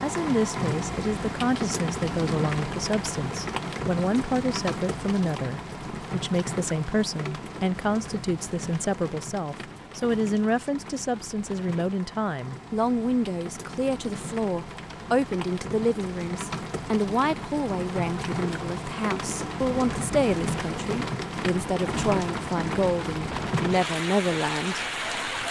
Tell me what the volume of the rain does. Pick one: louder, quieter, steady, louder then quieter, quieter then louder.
quieter then louder.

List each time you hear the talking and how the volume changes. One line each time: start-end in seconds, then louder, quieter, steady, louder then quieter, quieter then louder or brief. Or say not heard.
0.0-25.4 steady.